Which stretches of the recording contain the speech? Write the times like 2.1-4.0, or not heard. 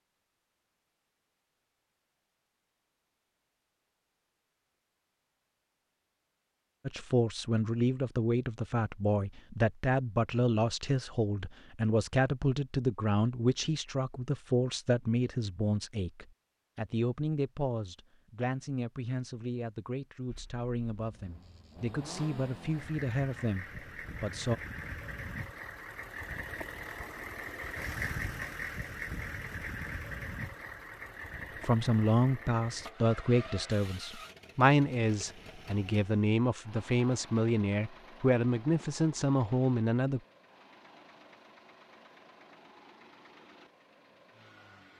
6.8-24.6, 31.6-40.2.